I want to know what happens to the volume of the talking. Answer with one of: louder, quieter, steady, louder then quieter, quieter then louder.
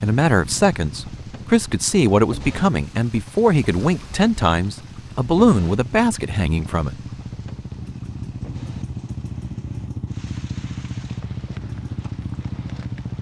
steady.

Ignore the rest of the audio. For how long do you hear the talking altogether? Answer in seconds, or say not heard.
7 s.